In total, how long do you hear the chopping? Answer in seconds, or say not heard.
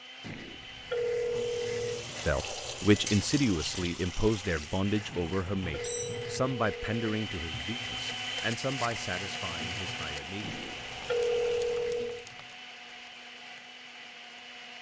not heard.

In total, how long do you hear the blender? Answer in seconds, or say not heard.
15 s.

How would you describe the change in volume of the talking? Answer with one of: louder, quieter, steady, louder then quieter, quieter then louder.
quieter.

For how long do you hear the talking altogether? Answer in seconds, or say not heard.
8 s.